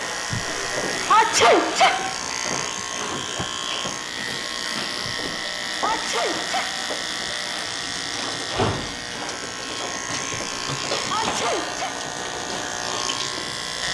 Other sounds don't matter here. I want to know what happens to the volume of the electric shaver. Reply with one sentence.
The loudness of the electric shaver stays about the same.